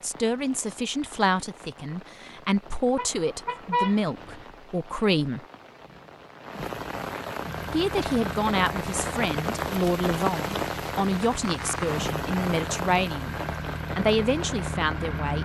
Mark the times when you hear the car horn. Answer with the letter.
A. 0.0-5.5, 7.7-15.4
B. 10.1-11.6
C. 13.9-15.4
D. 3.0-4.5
D.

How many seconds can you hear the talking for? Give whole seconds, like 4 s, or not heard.
13 s.